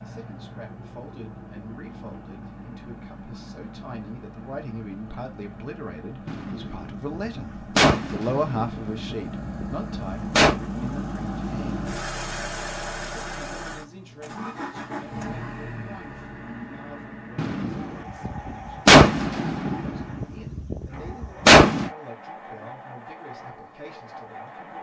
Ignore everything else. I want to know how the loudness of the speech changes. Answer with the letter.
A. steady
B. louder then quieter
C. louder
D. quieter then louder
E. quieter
B.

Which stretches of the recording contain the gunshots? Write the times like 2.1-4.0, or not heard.
6.2-10.6, 17.4-21.9.